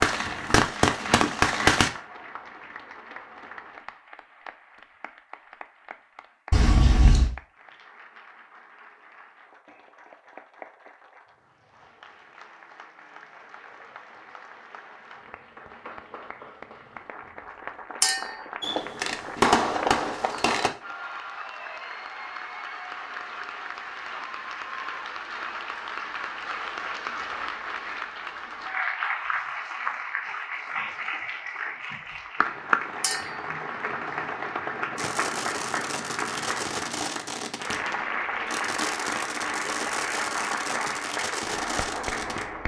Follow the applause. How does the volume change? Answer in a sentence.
The volume of the applause goes up.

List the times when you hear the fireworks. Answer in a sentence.
You can hear the fireworks from 0.0 to 1.9 s, from 18.6 to 20.7 s and from 35.0 to 42.5 s.